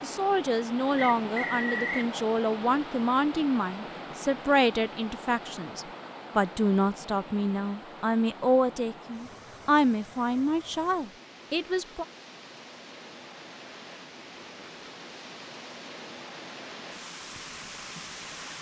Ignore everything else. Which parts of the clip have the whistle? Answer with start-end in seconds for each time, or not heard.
0.9-2.1.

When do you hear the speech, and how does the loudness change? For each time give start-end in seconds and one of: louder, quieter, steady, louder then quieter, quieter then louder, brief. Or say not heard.
0.0-12.1 steady.